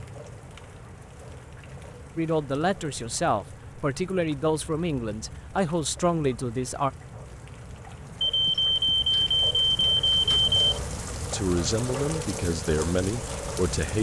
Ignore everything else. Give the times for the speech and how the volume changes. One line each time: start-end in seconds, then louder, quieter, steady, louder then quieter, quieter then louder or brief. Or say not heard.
2.1-6.9 steady
11.3-13.9 brief.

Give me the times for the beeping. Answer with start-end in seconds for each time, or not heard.
8.2-10.6.